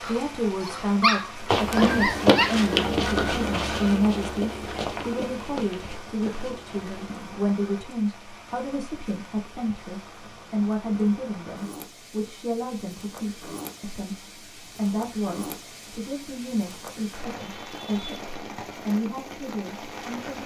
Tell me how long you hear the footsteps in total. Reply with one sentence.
The footsteps can be heard for 6 seconds in total.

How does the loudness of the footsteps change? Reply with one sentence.
The loudness of the footsteps goes down.